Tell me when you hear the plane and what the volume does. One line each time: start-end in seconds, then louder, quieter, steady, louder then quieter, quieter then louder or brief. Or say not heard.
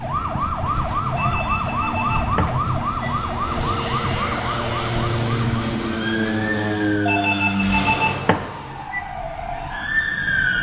0.0-8.2 louder.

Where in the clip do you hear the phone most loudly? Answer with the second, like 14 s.
8 s.